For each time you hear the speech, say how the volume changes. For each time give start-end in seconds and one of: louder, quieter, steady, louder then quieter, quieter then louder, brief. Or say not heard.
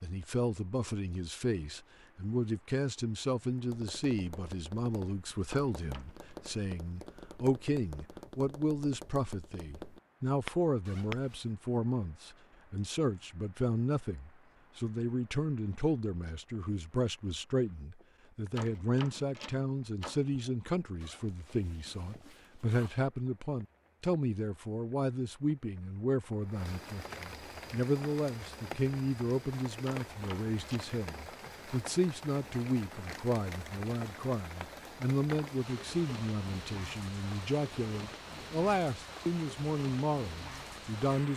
0.0-41.3 steady.